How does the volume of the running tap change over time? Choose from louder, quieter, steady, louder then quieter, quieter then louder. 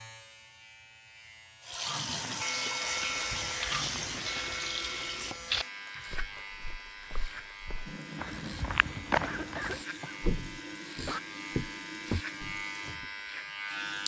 quieter.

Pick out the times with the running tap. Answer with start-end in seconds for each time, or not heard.
1.6-14.0.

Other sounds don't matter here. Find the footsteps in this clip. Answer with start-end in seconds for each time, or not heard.
2.9-13.1.